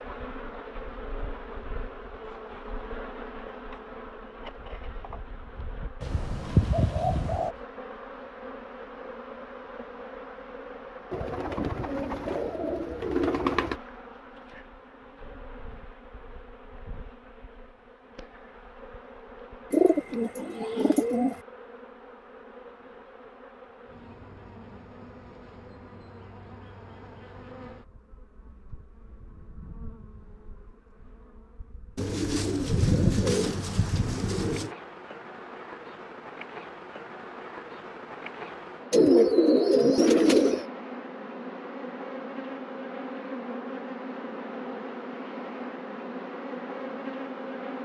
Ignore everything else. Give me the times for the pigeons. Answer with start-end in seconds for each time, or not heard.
6.0-7.5, 11.1-13.8, 19.7-21.4, 31.9-34.7, 38.9-40.6.